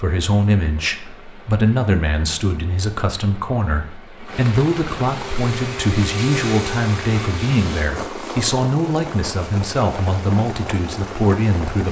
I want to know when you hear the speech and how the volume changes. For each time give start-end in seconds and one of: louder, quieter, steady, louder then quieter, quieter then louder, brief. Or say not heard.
0.0-11.8 steady.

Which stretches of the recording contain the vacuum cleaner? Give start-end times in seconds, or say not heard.
5.2-8.4.